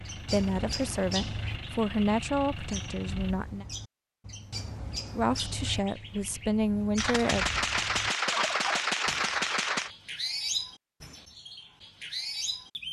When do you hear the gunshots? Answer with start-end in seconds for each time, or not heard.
7.0-9.9.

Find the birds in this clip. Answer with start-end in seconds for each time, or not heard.
0.0-12.8.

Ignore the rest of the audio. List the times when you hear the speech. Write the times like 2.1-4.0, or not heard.
0.1-3.6, 5.2-7.5.